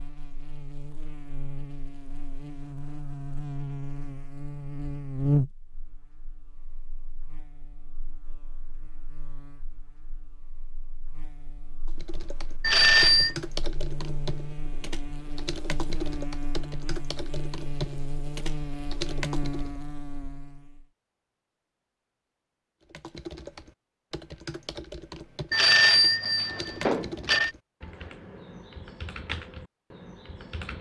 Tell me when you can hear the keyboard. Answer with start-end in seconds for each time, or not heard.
11.8-19.8, 22.9-30.7.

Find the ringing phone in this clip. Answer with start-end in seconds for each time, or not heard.
12.6-13.3, 25.5-27.5.